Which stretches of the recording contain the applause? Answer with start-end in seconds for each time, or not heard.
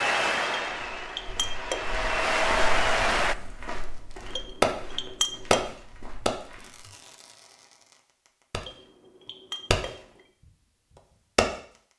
0.0-3.4.